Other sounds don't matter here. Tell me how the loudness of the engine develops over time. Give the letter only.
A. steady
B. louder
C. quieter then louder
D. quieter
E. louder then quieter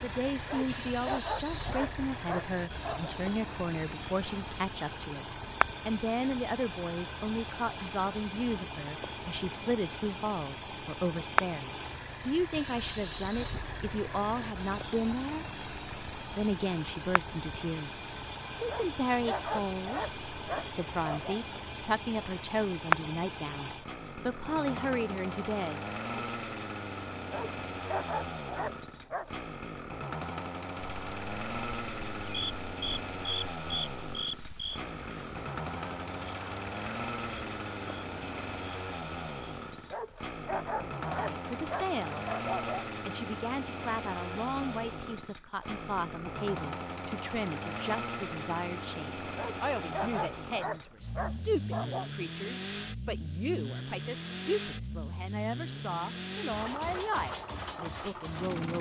A.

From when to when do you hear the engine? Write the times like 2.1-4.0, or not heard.
0.0-58.7.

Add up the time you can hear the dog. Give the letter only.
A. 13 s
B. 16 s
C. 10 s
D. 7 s
A.